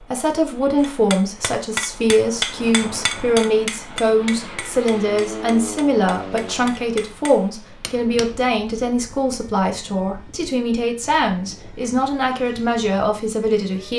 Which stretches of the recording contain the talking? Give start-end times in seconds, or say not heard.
0.0-13.9.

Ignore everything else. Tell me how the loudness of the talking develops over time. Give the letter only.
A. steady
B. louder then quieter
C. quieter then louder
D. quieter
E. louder
A.